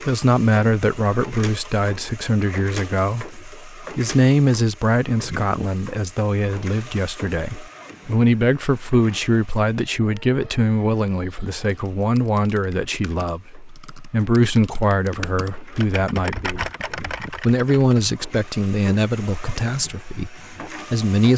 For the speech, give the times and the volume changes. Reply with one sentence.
The speech can be heard from 0.0 to 21.3 s, at a steady volume.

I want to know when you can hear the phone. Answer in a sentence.
You can't hear the phone here.